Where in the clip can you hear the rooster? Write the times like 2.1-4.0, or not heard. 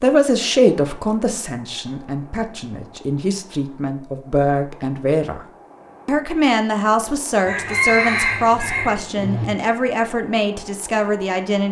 7.5-9.4.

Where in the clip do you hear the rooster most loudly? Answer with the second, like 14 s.
8 s.